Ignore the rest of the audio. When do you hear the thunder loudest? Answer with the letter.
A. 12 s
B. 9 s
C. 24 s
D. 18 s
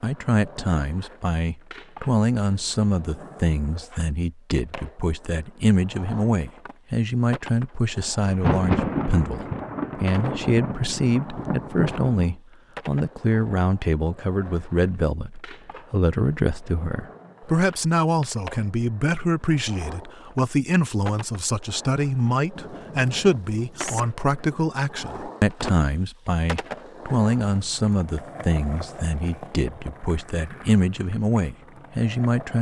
B.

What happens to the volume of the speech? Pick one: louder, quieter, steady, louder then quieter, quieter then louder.
steady.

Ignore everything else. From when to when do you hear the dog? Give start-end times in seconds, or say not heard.
not heard.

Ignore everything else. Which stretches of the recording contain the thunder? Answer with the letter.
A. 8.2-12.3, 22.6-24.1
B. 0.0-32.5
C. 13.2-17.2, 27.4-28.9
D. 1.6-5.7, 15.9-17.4
A.